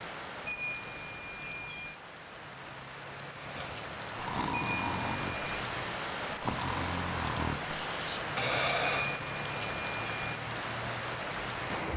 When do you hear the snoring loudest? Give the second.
9 s.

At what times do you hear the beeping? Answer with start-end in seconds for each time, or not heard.
0.5-2.0, 4.5-5.7, 8.8-10.4.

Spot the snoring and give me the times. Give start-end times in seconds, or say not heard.
3.4-9.2.